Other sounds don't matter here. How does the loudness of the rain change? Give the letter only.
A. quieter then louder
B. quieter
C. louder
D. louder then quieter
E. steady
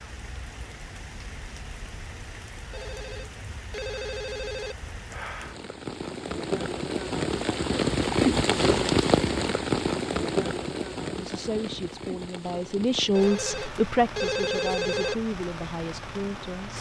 D.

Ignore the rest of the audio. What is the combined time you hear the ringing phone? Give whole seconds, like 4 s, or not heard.
4 s.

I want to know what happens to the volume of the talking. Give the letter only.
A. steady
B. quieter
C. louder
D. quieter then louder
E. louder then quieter
E.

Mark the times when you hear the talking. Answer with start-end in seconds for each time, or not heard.
11.1-16.7.